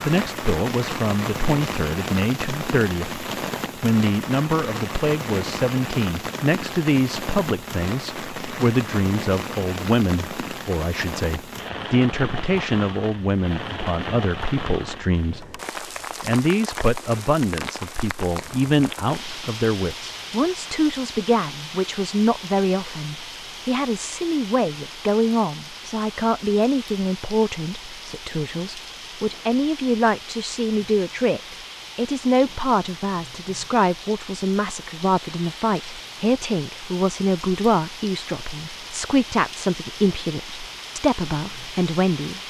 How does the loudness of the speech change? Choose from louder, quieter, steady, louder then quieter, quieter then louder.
steady.